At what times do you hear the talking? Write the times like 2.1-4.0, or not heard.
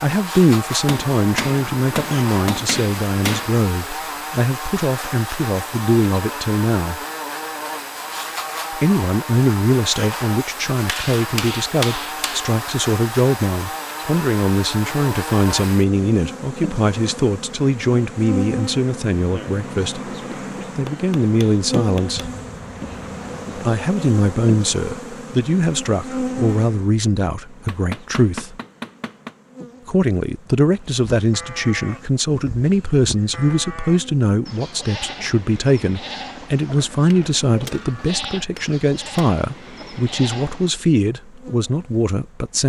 0.0-7.0, 8.7-20.1, 20.8-22.2, 23.6-28.6, 29.9-42.6.